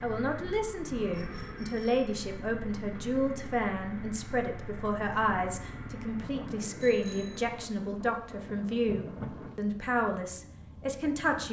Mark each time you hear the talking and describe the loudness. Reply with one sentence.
You can hear the talking from 0.0 to 11.4 s, at a steady volume.